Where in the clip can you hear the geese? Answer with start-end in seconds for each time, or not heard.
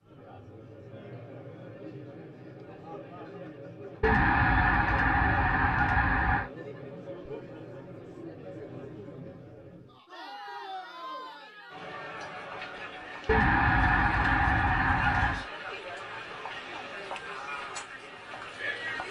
4.0-6.5, 13.2-15.4.